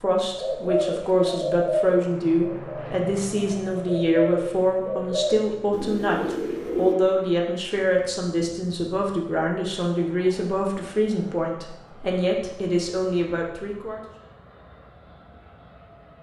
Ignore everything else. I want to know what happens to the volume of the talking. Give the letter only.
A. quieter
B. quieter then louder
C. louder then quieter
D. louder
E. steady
E.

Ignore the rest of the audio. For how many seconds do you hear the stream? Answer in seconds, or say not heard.
not heard.